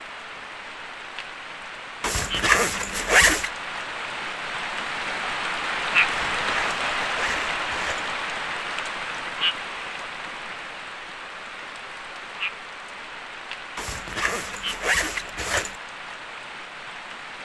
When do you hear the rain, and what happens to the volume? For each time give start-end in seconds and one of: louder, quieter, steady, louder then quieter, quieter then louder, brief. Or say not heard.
0.0-17.4 louder then quieter.